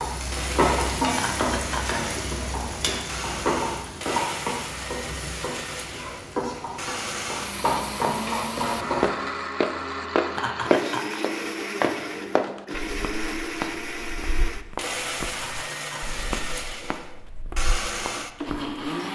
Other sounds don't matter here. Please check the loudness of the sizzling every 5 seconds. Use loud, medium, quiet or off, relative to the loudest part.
loud, loud, off, off.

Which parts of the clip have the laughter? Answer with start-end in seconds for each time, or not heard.
1.1-2.0, 10.3-11.2, 15.2-16.2.